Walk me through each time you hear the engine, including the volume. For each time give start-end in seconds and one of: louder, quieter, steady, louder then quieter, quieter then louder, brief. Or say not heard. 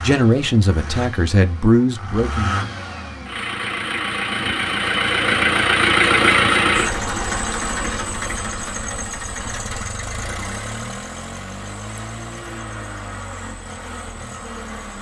0.0-14.9 louder then quieter.